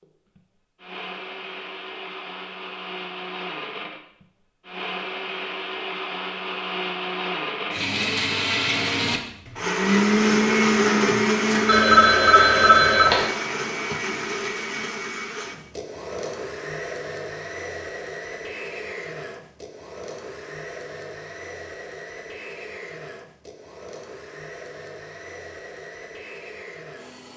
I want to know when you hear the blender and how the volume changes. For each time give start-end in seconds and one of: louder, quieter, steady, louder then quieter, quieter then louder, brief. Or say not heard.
0.0-27.3 louder then quieter.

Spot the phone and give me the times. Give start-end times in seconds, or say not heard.
11.7-13.2.